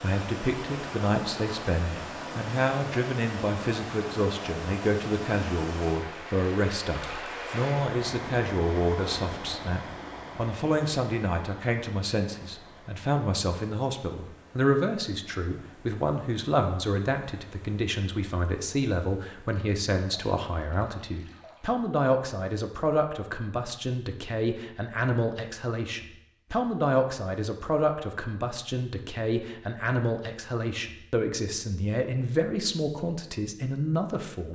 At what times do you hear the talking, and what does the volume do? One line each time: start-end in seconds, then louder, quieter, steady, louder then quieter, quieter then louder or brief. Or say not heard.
0.0-34.5 steady.